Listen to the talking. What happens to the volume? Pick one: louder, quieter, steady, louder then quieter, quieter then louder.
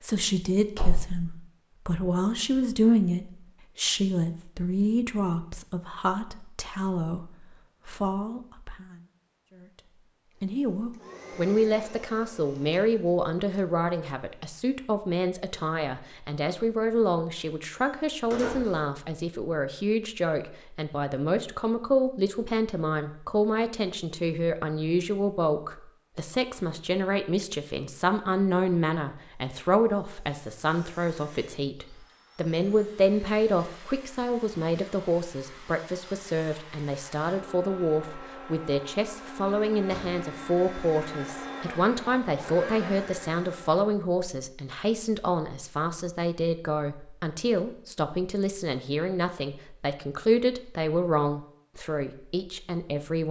steady.